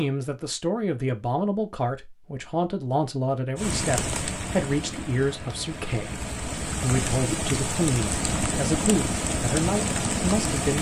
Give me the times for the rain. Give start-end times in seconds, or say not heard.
3.5-10.7.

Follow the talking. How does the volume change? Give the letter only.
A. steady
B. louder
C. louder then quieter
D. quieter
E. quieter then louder
A.